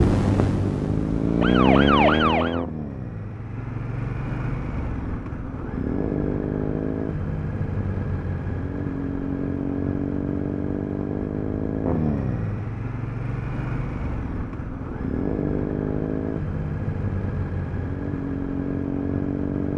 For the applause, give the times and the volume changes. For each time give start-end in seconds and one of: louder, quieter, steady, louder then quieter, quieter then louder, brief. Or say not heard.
not heard.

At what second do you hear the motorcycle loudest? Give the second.
2 s.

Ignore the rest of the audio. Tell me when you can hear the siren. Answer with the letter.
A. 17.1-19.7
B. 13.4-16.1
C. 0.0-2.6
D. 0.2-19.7
C.